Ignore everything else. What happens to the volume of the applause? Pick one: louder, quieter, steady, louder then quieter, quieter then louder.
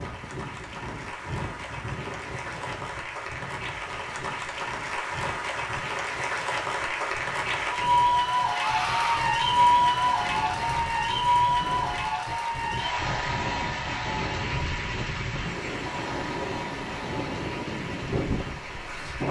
louder then quieter.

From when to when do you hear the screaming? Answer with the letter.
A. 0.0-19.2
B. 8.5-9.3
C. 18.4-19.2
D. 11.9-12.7
B.